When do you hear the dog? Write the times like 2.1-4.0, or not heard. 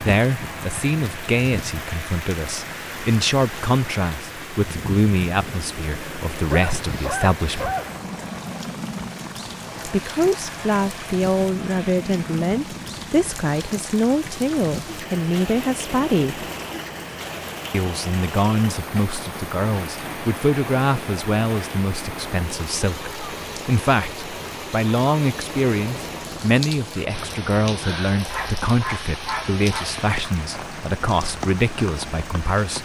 6.5-7.9, 28.2-29.9.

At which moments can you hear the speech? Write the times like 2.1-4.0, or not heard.
0.0-7.7, 9.8-16.4, 17.7-32.8.